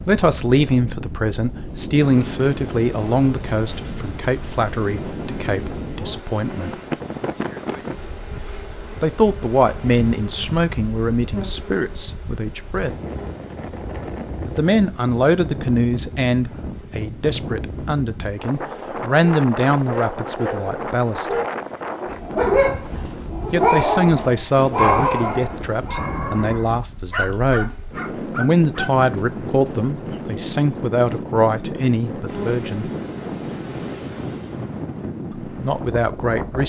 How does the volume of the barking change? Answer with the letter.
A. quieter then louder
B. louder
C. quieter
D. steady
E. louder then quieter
E.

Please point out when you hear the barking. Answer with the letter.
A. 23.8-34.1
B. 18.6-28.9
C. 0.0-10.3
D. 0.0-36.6
B.